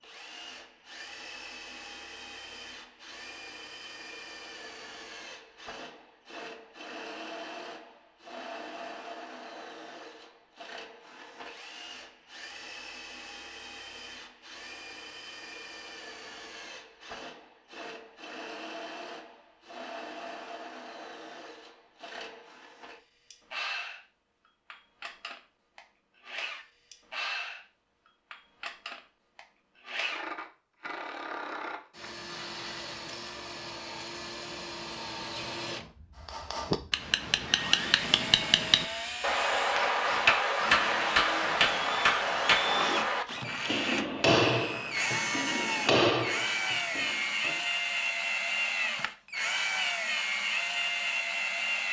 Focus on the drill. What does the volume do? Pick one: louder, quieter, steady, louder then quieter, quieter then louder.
louder.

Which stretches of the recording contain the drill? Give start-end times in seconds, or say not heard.
0.0-51.8.